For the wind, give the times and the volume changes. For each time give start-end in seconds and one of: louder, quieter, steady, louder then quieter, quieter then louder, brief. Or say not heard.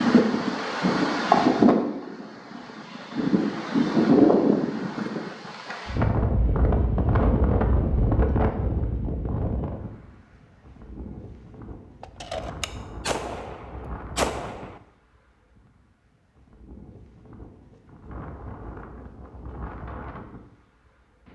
0.0-21.2 quieter.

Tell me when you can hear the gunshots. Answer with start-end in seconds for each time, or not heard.
12.0-14.8.